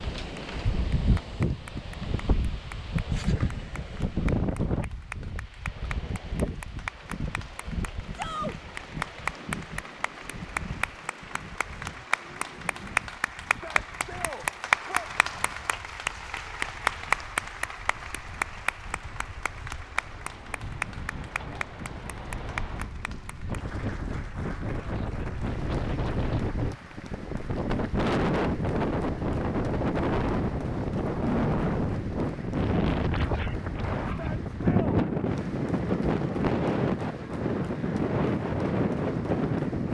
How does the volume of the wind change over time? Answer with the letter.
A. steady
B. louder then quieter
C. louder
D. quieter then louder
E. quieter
D.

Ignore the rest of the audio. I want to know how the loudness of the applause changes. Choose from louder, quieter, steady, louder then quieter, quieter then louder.
louder then quieter.